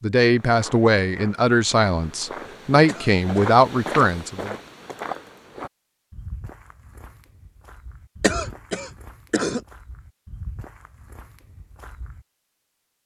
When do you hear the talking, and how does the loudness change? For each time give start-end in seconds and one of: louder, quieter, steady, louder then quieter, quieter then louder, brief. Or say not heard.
0.0-4.5 quieter then louder.